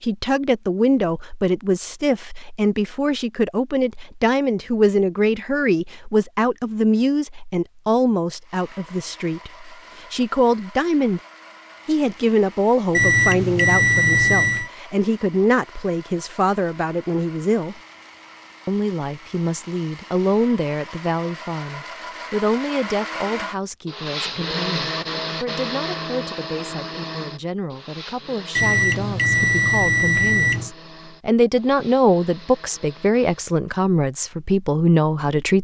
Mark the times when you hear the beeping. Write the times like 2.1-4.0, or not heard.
12.9-14.7, 28.6-30.7.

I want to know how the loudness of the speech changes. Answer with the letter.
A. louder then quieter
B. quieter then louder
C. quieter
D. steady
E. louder
B.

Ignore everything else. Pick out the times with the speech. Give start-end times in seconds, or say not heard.
0.0-11.2, 11.8-17.8, 18.6-35.5.